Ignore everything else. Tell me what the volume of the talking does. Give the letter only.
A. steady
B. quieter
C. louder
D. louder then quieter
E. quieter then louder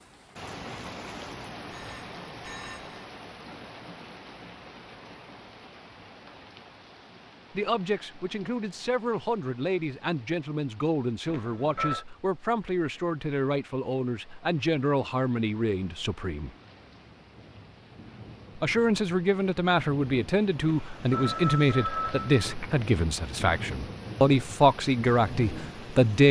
C.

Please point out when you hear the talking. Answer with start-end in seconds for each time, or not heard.
7.5-16.5, 18.6-26.2.